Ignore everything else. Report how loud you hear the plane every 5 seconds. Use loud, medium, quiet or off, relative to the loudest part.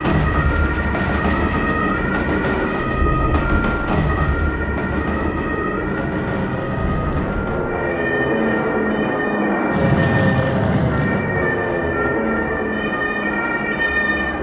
medium, loud, loud.